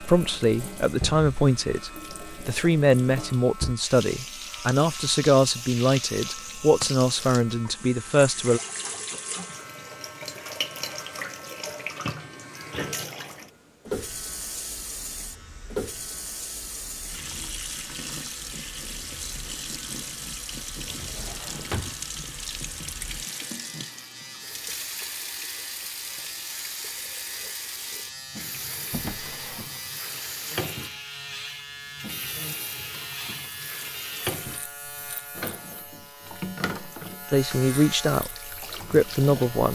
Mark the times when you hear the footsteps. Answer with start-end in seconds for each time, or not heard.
not heard.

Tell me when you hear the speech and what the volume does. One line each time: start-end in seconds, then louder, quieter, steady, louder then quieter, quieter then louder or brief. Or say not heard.
0.0-8.6 steady
37.3-38.3 brief
38.9-39.7 brief.